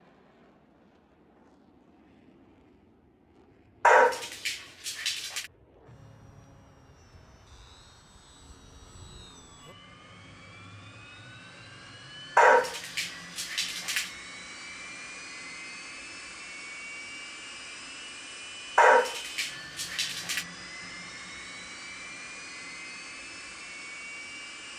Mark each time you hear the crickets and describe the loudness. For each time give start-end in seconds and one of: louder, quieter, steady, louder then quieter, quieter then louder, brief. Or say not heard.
not heard.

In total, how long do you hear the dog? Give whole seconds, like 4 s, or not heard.
5 s.